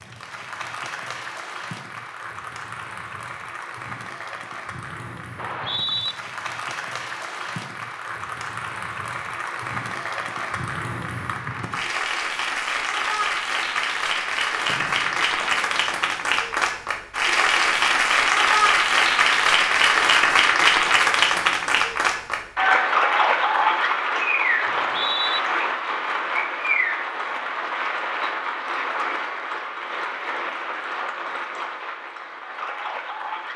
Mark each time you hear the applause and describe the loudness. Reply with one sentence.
You can hear the applause from 0.0 to 33.5 s, getting louder then quieter.